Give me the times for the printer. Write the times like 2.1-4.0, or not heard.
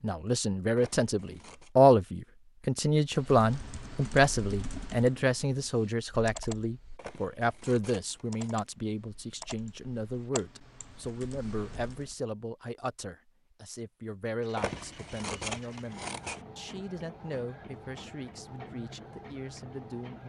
14.4-20.2.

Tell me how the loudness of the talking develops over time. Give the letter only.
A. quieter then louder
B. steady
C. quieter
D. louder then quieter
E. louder
C.